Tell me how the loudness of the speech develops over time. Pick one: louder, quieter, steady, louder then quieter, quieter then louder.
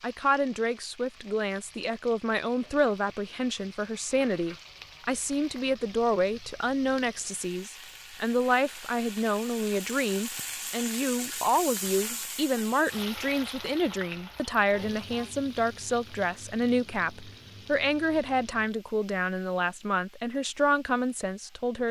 steady.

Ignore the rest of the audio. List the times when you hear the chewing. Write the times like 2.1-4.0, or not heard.
not heard.